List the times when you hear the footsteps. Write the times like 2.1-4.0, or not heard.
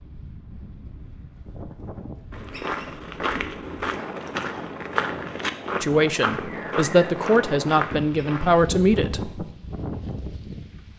2.3-8.6.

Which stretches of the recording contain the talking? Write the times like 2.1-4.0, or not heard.
5.8-9.5.